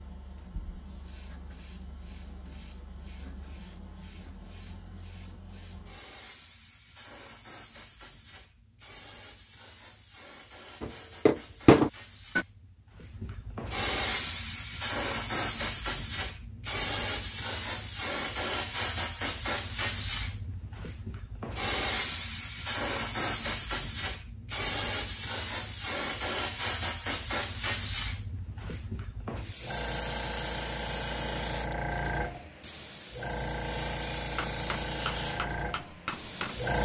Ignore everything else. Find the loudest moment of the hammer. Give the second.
12 s.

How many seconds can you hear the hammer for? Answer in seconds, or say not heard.
4 s.